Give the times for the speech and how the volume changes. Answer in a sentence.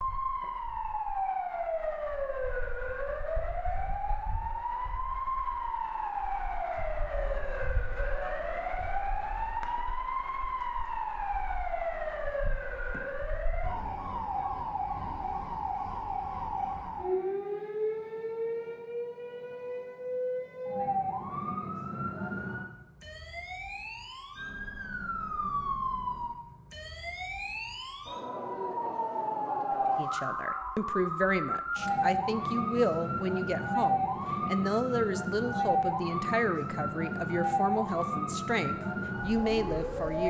The speech can be heard from 29.9 to 40.2 s, at a steady volume.